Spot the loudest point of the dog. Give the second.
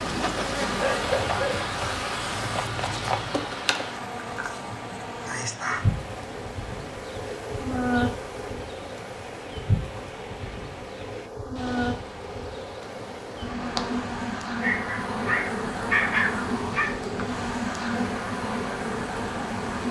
16 s.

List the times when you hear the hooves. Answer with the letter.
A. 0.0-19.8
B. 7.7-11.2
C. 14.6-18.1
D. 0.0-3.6
D.